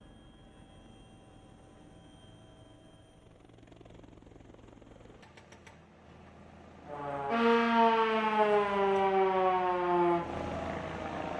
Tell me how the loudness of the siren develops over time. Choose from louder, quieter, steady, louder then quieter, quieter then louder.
quieter.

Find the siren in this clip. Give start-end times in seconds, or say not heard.
6.8-11.3.